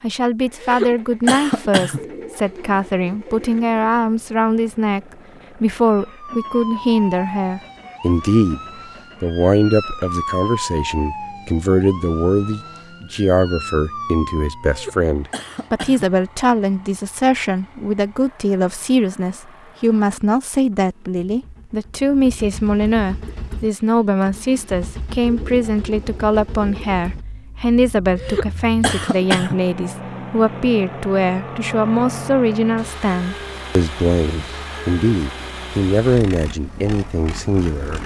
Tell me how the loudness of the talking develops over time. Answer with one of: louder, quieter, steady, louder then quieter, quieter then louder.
steady.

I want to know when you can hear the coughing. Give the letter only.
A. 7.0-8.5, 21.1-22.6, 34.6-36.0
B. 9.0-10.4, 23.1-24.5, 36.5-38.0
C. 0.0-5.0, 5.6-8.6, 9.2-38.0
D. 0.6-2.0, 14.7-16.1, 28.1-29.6
D.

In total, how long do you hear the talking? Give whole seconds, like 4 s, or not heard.
37 s.